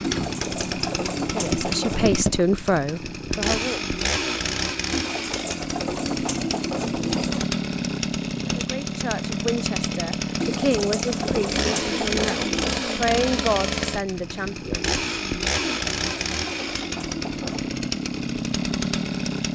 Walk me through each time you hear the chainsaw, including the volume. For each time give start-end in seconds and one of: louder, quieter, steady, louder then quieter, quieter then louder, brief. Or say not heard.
0.0-19.5 steady.